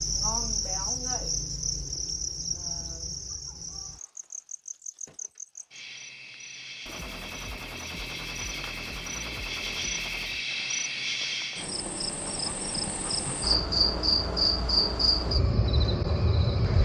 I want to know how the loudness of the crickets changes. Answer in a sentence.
The loudness of the crickets goes down, then up.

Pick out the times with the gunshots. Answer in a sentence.
You can hear the gunshots from 6.8 to 10.4 s.